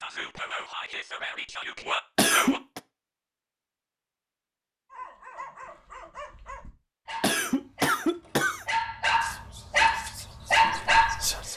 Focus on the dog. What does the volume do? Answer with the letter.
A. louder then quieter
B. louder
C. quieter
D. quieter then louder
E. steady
B.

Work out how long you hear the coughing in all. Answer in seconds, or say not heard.
2 s.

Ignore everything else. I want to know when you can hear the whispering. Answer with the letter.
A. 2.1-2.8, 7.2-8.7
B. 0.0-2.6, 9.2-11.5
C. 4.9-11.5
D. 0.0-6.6
B.